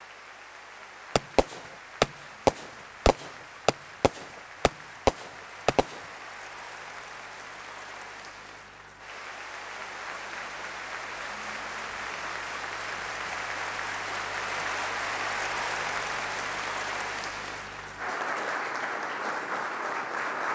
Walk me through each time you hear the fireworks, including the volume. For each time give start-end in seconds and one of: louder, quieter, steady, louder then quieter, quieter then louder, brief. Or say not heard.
1.1-6.0 quieter then louder.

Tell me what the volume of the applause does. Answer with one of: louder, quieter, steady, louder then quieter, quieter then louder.
louder.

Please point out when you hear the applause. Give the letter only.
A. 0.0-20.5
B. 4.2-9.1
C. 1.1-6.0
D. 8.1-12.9
A.